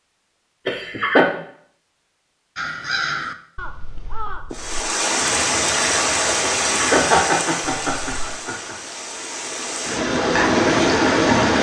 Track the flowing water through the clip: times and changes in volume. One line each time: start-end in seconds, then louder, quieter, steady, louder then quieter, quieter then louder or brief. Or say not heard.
4.5-11.5 quieter then louder.